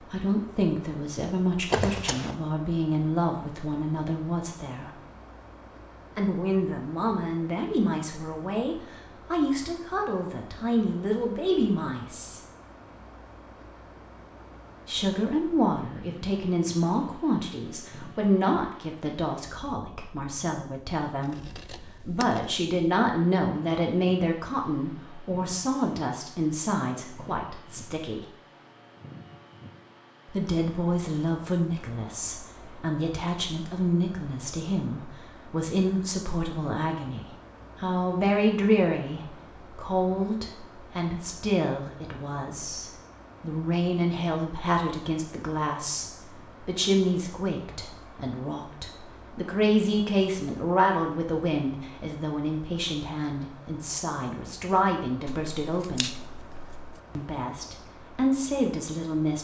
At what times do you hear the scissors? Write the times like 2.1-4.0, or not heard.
1.7-2.4, 21.2-22.4, 55.2-57.0.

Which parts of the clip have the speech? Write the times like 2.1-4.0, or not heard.
0.0-5.0, 6.2-12.4, 14.8-28.2, 30.2-56.1, 57.1-59.4.